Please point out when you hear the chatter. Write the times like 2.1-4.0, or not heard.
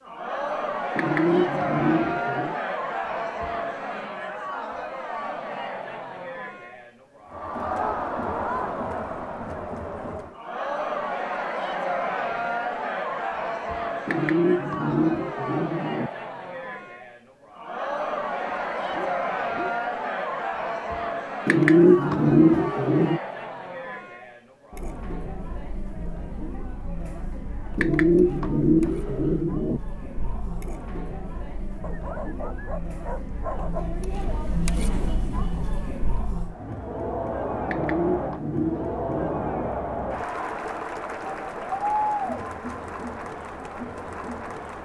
0.0-44.7.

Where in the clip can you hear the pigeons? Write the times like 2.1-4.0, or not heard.
0.9-2.5, 14.1-16.1, 21.4-23.2, 27.8-29.8, 37.6-39.7.